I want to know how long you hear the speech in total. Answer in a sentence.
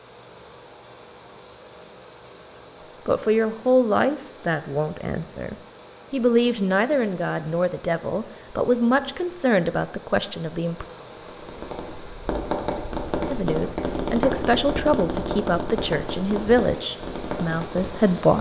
You can hear the speech for 13 seconds altogether.